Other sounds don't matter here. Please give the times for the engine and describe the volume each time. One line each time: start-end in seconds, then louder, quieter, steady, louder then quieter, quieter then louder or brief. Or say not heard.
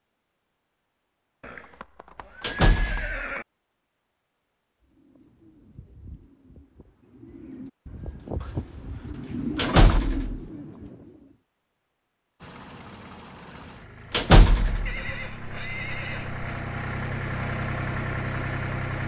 12.4-19.0 louder.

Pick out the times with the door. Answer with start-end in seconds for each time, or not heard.
2.4-3.2, 9.6-10.4, 14.1-14.9.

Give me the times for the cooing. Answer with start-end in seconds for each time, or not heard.
4.8-11.3.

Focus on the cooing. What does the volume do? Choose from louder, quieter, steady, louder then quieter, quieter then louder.
louder.